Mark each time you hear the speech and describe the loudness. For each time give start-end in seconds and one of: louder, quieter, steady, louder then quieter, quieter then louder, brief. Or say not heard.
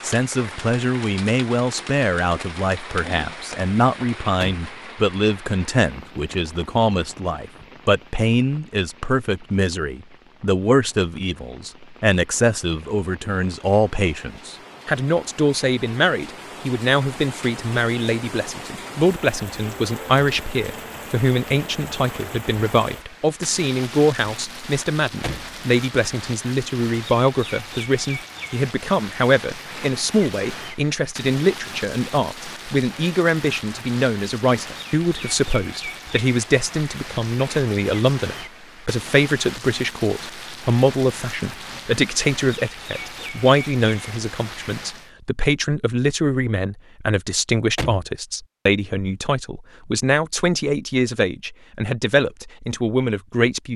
0.0-53.7 steady.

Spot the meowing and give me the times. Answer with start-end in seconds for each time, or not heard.
not heard.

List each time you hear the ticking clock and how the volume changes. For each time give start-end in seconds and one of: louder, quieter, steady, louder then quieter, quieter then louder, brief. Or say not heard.
not heard.